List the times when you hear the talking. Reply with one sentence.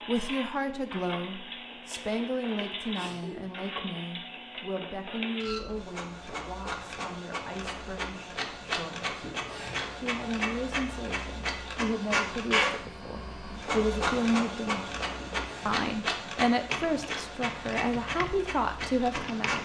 You can hear the talking from 0.1 to 9.2 s, from 9.9 to 14.9 s and from 15.7 to 19.5 s.